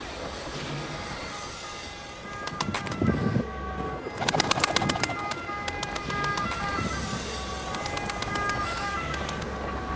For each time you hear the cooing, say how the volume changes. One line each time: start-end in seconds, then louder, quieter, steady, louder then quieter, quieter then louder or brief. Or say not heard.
2.3-9.6 quieter.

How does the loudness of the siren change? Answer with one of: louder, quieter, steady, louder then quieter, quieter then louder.
louder.